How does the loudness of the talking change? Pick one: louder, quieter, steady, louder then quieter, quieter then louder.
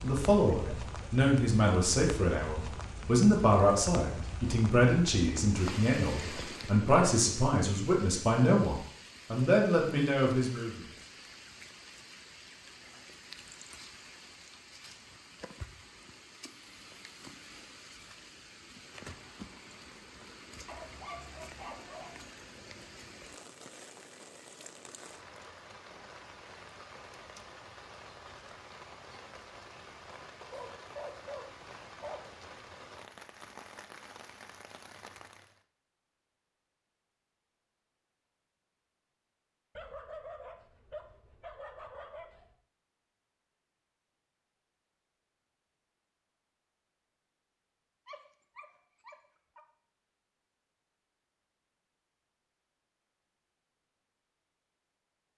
steady.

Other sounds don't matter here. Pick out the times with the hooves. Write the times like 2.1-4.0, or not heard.
not heard.